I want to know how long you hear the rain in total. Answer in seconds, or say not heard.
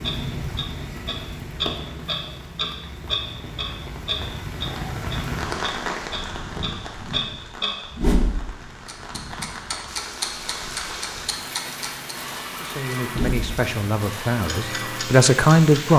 16 s.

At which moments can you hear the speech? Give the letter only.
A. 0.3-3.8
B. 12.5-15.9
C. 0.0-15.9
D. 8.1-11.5
B.